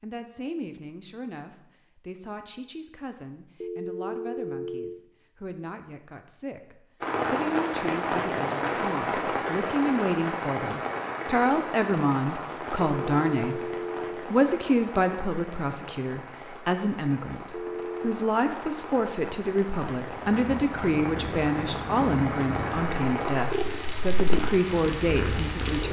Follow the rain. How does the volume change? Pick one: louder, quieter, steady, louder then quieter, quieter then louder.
quieter then louder.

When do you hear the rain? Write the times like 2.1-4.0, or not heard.
7.0-25.8.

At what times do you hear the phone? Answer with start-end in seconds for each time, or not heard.
3.6-5.0, 12.9-14.3, 17.5-18.1.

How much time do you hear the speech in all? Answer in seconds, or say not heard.
26 s.